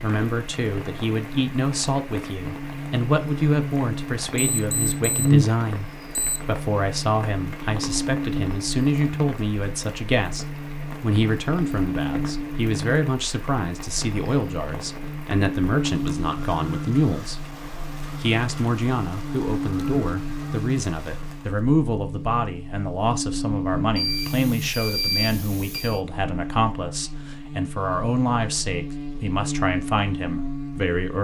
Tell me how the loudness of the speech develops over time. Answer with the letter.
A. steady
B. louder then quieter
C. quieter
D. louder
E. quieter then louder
A.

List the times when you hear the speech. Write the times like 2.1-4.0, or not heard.
0.0-17.5, 18.1-31.2.